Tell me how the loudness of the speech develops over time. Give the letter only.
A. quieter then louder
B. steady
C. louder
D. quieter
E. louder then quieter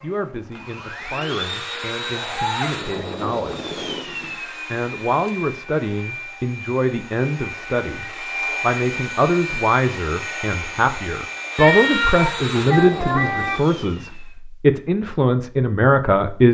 C.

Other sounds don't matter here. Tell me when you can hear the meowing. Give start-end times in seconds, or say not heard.
1.7-2.7, 11.6-13.6.